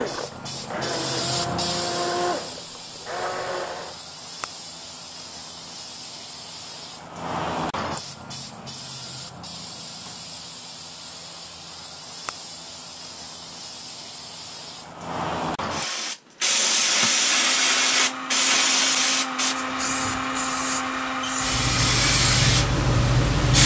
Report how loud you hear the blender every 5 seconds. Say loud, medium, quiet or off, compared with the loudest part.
loud, off, off, loud, loud.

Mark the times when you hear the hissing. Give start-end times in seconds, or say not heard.
0.0-23.6.